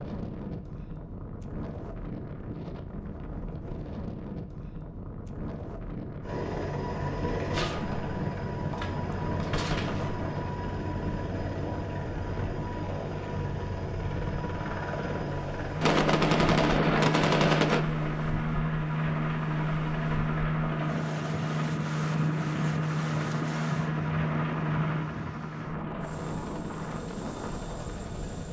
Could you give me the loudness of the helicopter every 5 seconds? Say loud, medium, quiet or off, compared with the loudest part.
off, medium, medium, loud, loud, medium.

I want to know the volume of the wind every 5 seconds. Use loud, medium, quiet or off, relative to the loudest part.
loud, loud, loud, medium, loud, loud.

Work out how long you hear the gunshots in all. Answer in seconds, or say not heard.
5 s.